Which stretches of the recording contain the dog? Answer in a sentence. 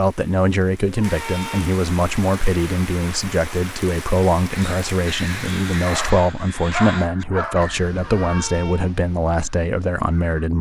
You can hear the dog from 5.8 to 7.8 s.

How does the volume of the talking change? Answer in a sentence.
The loudness of the talking stays about the same.